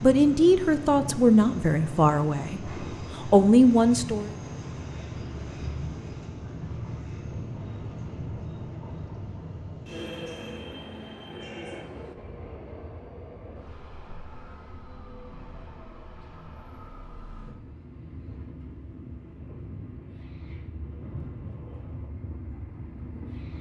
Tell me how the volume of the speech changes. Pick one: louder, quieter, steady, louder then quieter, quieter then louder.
quieter then louder.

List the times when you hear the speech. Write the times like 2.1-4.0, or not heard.
0.0-4.3.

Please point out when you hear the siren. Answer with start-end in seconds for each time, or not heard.
not heard.